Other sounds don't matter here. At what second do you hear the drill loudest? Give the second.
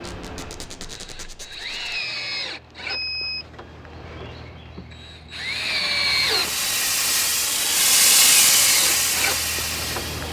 6 s.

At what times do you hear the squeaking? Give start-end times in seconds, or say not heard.
0.0-1.9.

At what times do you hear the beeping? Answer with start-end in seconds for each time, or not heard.
1.9-3.5.